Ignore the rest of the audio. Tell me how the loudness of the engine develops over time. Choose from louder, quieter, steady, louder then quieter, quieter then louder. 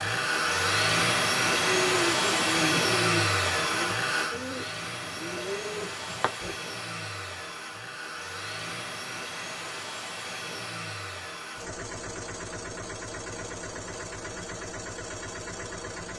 quieter.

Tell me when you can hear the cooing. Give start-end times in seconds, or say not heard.
1.5-6.5.